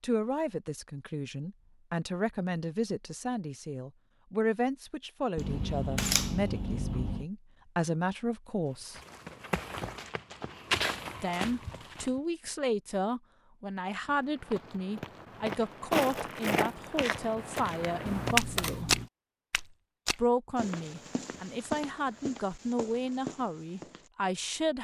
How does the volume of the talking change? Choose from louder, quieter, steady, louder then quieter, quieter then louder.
steady.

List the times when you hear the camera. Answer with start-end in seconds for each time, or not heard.
5.3-7.2, 18.1-19.1.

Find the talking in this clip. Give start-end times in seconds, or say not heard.
0.0-9.0, 11.2-18.9, 20.1-24.8.